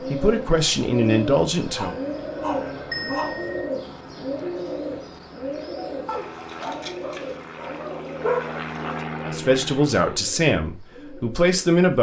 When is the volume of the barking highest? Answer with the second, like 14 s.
8 s.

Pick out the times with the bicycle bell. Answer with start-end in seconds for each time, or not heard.
2.9-3.7.